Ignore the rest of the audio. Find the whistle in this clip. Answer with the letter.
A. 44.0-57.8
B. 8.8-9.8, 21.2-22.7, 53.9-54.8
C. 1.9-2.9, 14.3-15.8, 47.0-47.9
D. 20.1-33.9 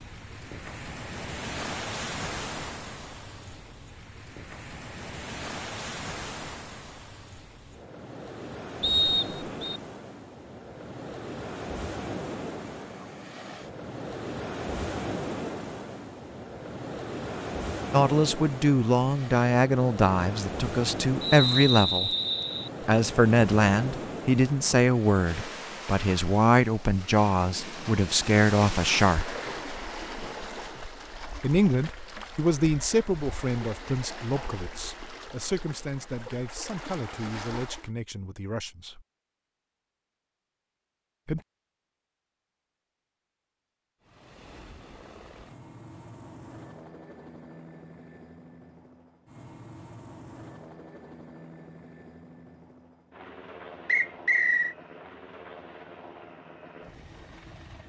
B.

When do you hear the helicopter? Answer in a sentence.
You can hear the helicopter from 44.0 to 57.8 s.